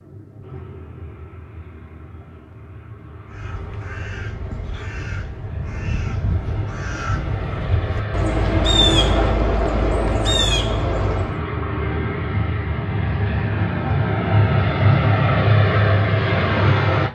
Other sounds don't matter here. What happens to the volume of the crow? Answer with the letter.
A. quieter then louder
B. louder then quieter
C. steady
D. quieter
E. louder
E.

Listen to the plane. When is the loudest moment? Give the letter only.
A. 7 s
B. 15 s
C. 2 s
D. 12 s
B.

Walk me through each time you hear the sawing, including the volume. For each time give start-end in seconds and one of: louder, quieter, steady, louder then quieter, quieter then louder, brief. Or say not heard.
not heard.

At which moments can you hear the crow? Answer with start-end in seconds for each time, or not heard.
3.3-11.4.